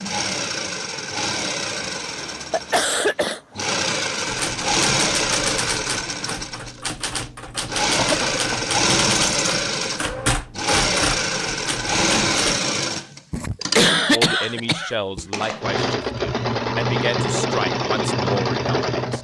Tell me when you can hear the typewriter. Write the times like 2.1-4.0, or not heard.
4.2-12.6.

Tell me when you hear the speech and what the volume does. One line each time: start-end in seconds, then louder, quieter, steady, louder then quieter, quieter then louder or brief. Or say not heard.
14.1-19.1 steady.